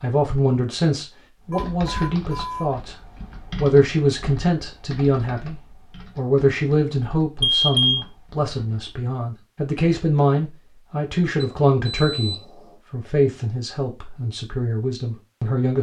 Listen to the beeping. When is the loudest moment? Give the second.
8 s.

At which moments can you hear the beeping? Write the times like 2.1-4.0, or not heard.
1.5-2.7, 7.4-8.1, 11.4-12.8.